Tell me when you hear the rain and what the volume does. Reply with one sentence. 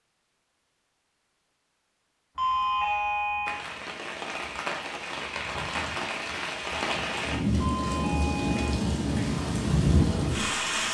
The rain can be heard from 3.5 to 10.8 s, getting louder.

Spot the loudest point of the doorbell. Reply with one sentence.
The loudest moment of the doorbell is at 3 seconds.